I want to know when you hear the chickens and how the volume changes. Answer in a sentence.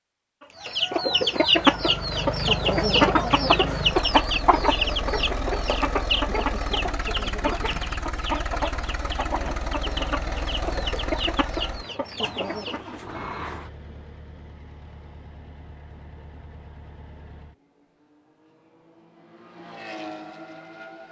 The chickens can be heard from 0.6 to 12.8 s, getting quieter.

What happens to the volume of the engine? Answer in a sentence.
The loudness of the engine goes down.